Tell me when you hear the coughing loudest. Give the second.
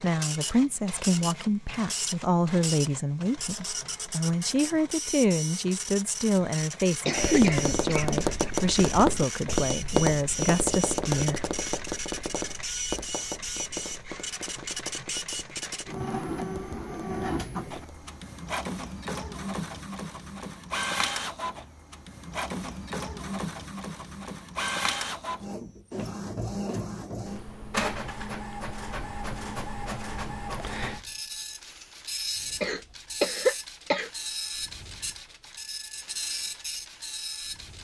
33 s.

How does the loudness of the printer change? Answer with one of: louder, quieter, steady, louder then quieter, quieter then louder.
steady.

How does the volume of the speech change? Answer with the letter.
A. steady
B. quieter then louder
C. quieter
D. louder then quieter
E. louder
A.